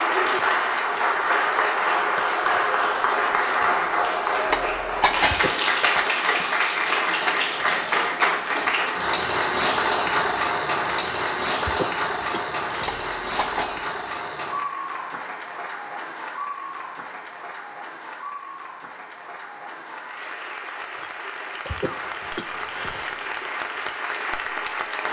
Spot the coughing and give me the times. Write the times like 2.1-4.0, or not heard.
5.2-5.9, 11.6-13.0, 21.6-23.4.